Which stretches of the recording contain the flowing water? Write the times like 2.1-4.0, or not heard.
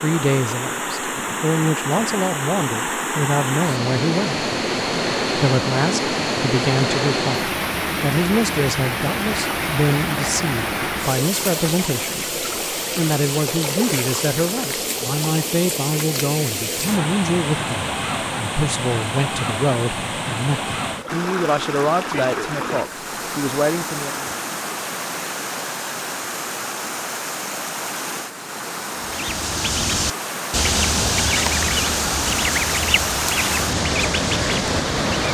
0.0-35.3.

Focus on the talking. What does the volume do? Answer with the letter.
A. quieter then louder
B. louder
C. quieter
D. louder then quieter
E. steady
E.